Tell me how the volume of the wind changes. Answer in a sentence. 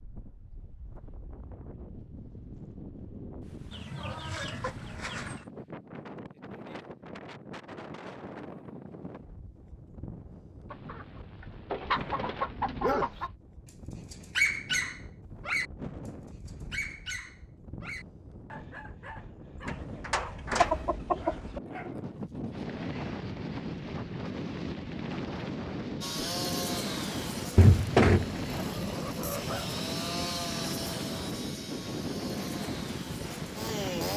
The loudness of the wind goes up.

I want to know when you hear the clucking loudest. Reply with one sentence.
The loudest moment of the clucking is at 28 seconds.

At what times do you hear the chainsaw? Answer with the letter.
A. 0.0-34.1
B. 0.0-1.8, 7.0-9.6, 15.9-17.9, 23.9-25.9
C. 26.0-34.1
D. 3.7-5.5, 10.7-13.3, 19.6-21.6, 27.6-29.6
C.